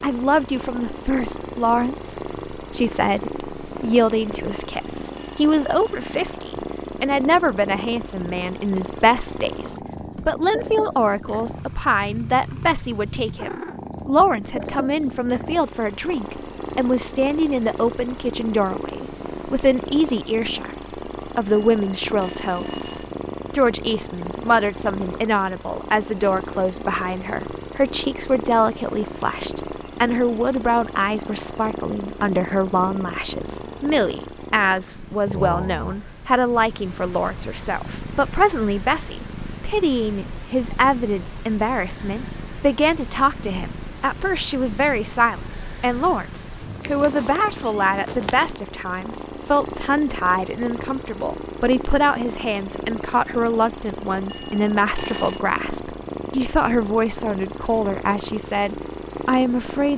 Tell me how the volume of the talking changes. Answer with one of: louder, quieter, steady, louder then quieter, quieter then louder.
steady.